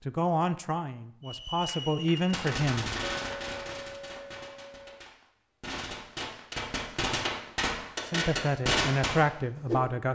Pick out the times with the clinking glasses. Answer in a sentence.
The clinking glasses can be heard from 3.2 to 5.1 s.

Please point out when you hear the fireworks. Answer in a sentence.
The fireworks can be heard from 1.2 to 9.8 s.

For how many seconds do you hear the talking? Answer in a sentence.
The talking can be heard for 5 seconds in total.